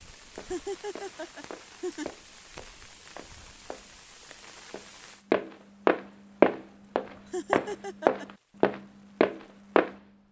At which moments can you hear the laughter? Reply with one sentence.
You can hear the laughter from 0.5 to 2.1 s and from 7.3 to 8.2 s.